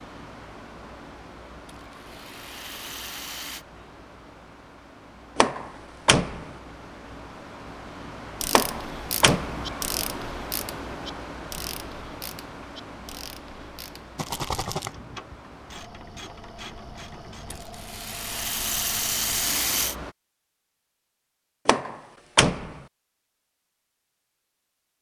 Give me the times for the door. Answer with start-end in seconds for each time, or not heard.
5.3-6.5, 8.5-9.7, 21.6-22.8.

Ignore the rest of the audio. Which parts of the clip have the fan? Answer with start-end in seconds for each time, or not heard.
0.0-20.1.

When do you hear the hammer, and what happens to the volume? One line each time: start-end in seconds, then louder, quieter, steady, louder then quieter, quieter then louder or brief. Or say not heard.
not heard.